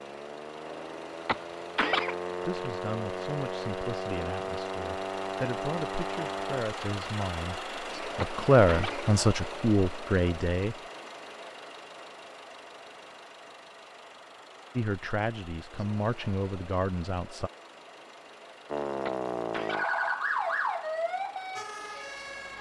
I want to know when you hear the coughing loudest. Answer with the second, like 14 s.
2 s.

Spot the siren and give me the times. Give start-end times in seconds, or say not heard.
0.0-6.7, 18.7-22.5.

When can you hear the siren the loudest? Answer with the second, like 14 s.
20 s.